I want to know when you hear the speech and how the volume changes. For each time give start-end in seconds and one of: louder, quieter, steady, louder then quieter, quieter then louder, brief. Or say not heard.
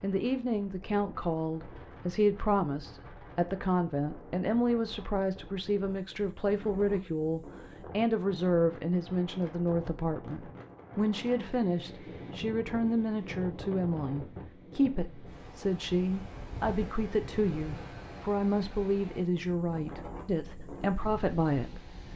0.0-21.9 steady.